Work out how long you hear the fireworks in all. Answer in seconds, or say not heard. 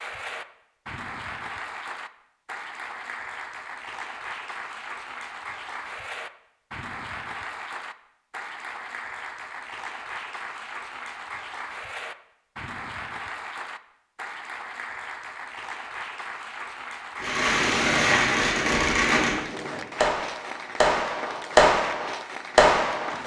6 s.